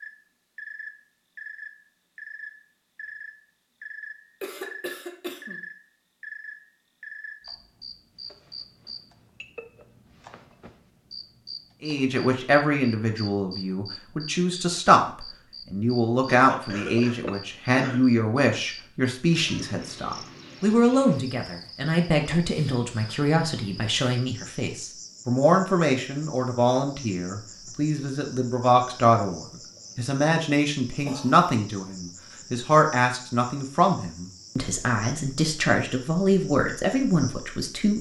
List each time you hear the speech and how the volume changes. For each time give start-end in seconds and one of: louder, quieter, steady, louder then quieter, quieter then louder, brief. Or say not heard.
11.8-37.9 steady.